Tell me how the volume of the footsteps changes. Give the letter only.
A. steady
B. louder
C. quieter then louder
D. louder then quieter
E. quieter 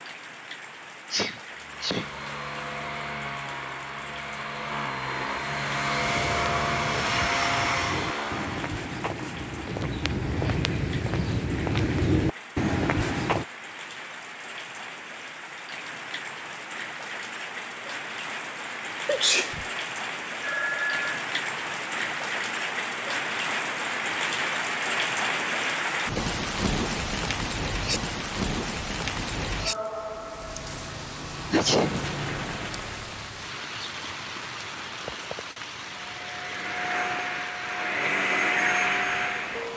B.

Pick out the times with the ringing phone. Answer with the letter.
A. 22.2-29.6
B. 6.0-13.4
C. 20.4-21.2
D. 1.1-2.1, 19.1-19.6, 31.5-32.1
C.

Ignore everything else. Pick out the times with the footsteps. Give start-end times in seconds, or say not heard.
6.0-13.4.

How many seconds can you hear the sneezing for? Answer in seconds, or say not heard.
2 s.